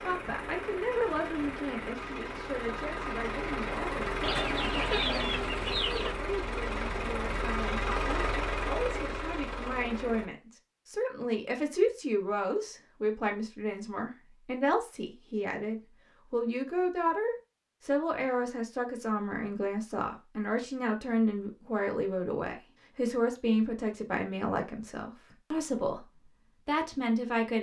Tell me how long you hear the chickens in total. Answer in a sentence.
You can hear the chickens for 2 seconds altogether.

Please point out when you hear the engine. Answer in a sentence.
You can hear the engine from 0.0 to 10.2 s.